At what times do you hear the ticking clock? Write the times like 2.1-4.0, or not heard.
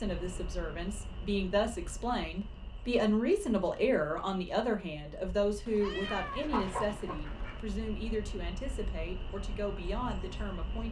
not heard.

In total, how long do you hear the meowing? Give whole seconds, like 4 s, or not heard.
2 s.